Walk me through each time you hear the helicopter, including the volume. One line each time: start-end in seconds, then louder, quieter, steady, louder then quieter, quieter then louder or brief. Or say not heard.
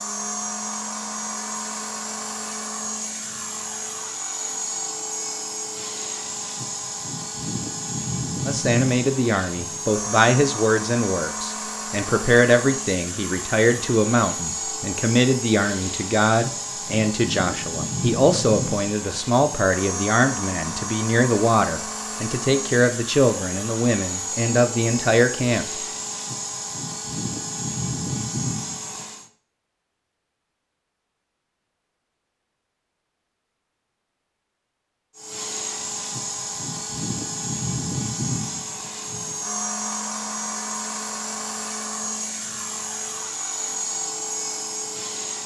0.0-29.3 steady
35.1-45.4 steady.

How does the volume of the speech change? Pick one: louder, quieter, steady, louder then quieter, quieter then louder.
steady.